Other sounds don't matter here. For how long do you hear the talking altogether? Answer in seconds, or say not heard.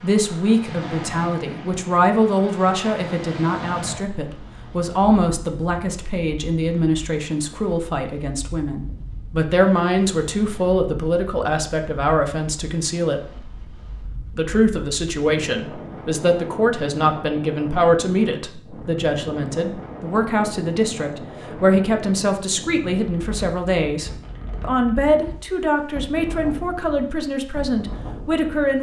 28 s.